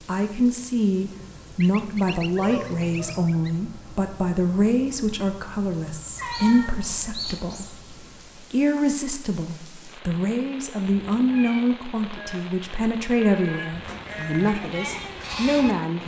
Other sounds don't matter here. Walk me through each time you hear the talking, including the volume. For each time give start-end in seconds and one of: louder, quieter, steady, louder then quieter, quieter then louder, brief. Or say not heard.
0.1-16.0 steady.